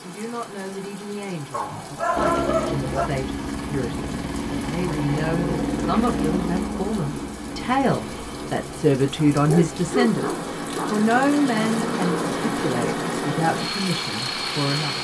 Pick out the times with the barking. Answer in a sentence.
You can hear the barking from 1.5 to 3.1 s and from 9.3 to 11.1 s.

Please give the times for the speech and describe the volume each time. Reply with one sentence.
You can hear the speech from 0.0 to 14.9 s, getting louder then quieter.